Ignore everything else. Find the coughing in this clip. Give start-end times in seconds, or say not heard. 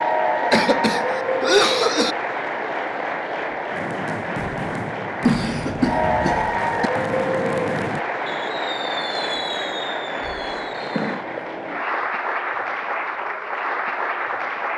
0.5-2.1, 5.2-6.9, 11.3-12.1.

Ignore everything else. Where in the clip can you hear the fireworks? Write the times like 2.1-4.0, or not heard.
3.6-11.2.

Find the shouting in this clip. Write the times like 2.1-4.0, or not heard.
not heard.